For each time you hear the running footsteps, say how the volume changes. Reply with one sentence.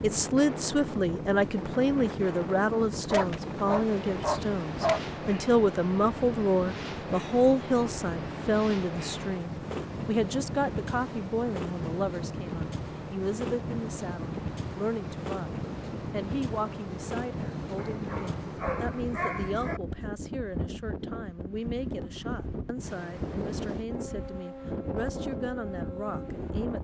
The running footsteps can't be heard in this clip.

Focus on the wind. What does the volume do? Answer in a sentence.
The loudness of the wind stays about the same.